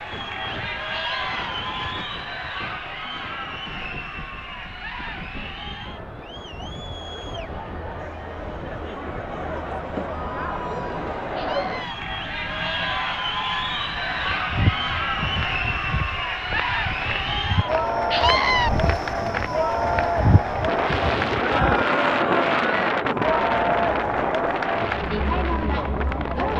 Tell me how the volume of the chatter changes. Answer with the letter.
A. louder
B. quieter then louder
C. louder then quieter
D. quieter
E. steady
A.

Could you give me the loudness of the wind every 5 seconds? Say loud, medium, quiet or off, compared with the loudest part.
quiet, quiet, quiet, quiet, loud, medium.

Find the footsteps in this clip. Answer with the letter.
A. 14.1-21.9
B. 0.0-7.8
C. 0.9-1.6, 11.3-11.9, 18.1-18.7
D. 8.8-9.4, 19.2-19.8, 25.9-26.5
A.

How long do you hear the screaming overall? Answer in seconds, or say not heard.
2 s.